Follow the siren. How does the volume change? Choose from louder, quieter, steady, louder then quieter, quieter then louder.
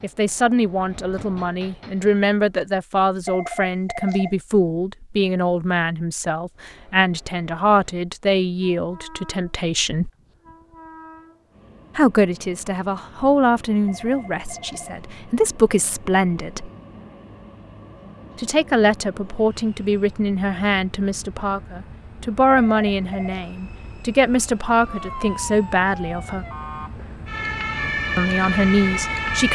louder.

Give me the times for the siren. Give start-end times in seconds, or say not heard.
24.8-29.5.